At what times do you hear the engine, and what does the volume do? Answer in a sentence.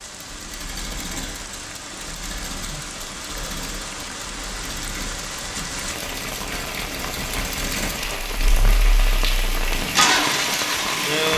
The engine can be heard from 0.0 to 11.3 s, getting louder.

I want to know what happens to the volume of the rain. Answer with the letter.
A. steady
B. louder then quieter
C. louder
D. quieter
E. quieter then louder
C.